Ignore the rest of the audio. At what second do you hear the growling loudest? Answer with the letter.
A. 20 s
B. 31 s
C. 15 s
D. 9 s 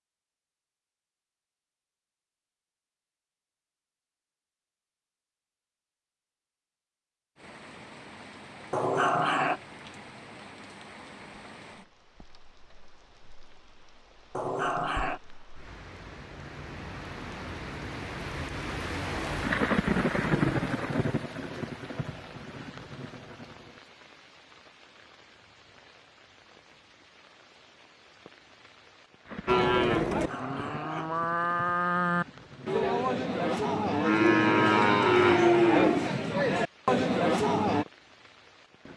D.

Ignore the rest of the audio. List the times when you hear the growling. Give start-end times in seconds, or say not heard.
8.7-9.6, 14.3-15.2, 30.1-31.1.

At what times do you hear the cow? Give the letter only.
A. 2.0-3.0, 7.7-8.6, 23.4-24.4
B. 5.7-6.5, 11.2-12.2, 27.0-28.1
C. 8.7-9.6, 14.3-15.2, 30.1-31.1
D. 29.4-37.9
D.